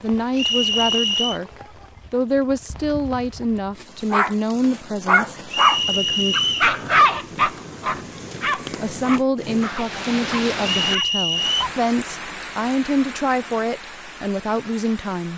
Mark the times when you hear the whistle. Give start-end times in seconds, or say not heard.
0.3-1.4, 5.5-6.8, 10.6-11.7.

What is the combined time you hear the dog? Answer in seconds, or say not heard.
8 s.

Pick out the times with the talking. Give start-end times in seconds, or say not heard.
0.0-1.5, 2.1-6.3, 8.8-15.3.